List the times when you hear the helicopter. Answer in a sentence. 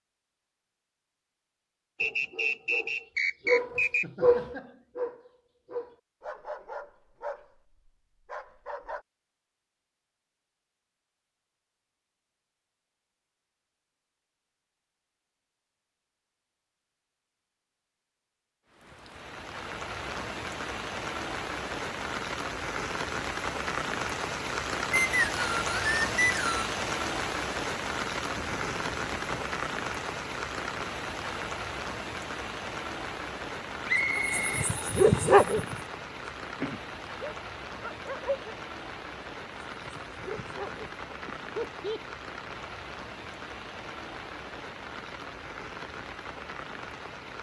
The helicopter can't be heard in this clip.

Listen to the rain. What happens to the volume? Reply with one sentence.
The volume of the rain goes down.